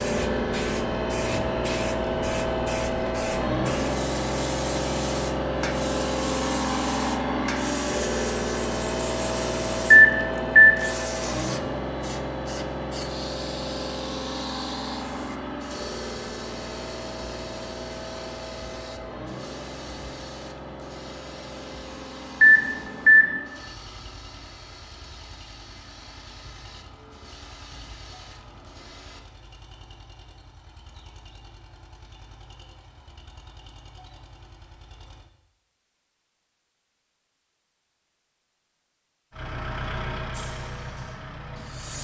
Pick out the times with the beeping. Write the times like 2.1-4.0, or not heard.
9.9-10.8, 22.4-23.4.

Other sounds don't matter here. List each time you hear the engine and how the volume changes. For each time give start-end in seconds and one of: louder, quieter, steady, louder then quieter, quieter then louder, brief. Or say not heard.
0.0-35.2 quieter
39.3-41.9 brief.